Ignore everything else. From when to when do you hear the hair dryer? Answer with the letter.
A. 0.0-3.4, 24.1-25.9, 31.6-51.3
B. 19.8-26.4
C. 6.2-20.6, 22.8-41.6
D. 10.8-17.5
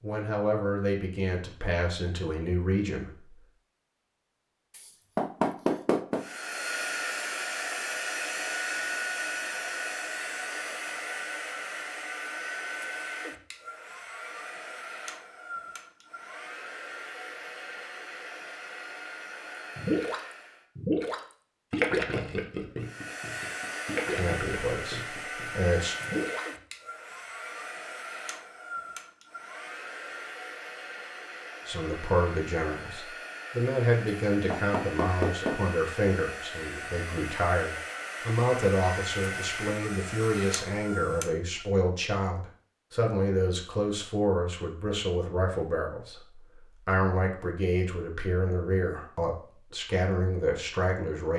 C.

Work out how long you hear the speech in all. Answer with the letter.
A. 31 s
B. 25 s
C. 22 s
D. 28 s
B.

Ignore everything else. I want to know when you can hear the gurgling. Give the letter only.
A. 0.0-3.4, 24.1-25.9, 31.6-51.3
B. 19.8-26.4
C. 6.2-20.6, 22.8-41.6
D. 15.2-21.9
B.